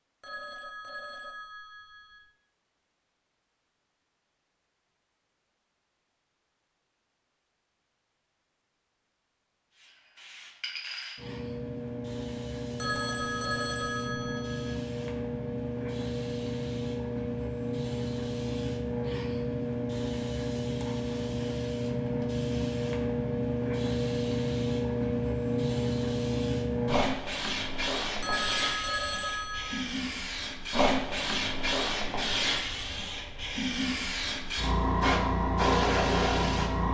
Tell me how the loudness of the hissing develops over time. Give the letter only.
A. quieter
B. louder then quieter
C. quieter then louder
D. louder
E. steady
D.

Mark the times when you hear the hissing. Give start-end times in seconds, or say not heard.
9.7-36.8.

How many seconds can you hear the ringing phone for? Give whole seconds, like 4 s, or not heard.
6 s.